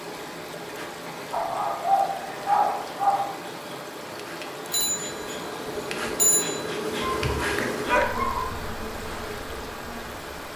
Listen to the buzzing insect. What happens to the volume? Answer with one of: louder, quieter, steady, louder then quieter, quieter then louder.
louder then quieter.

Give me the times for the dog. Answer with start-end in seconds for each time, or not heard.
1.3-3.3, 7.0-8.4.